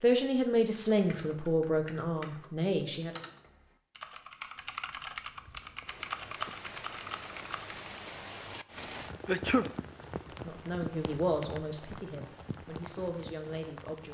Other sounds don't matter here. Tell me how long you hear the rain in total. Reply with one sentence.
The rain can be heard for 9 seconds in total.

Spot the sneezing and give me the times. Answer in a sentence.
You can hear the sneezing from 9.2 to 9.7 s.